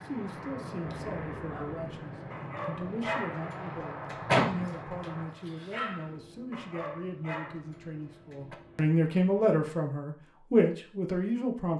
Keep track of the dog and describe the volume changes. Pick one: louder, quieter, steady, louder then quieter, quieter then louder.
louder then quieter.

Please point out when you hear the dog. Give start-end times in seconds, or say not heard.
0.8-8.6.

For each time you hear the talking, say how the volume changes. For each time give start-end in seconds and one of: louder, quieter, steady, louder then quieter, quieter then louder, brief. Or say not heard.
0.0-11.7 louder.